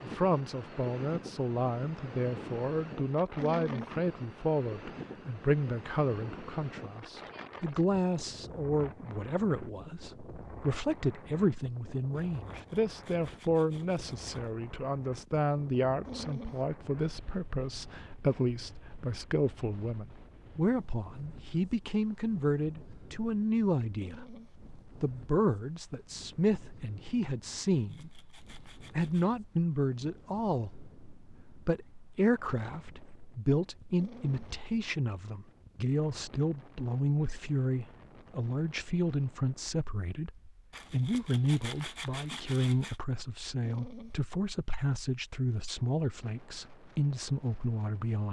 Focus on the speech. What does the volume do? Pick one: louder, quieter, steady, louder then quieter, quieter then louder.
steady.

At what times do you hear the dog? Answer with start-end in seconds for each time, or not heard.
3.4-4.0, 16.1-16.6, 23.9-24.6, 34.0-34.5, 43.6-44.2.